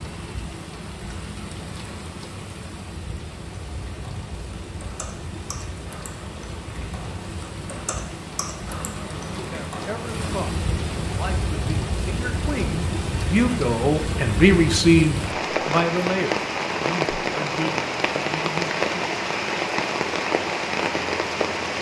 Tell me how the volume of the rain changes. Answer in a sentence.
The loudness of the rain goes up.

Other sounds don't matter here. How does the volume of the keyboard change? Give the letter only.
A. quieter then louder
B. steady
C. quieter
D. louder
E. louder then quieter
D.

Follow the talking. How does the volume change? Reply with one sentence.
The loudness of the talking goes up, then down.